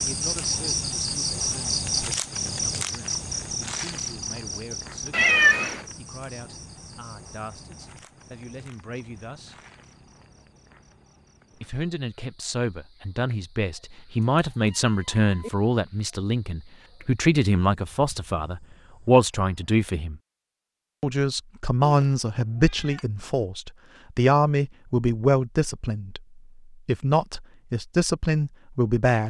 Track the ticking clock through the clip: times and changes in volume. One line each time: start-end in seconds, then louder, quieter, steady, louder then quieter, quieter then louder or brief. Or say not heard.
not heard.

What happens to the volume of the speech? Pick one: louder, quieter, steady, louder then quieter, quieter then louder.
louder.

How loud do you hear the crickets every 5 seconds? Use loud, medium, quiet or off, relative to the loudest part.
loud, quiet, quiet, quiet, off, off.